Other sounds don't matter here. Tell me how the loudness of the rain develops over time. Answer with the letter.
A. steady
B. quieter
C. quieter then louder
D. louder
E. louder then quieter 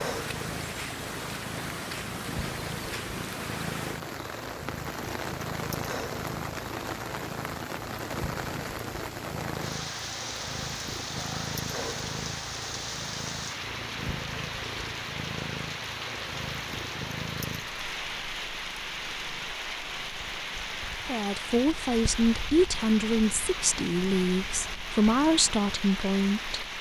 A.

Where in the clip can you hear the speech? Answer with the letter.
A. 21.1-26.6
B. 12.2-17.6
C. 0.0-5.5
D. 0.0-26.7
A.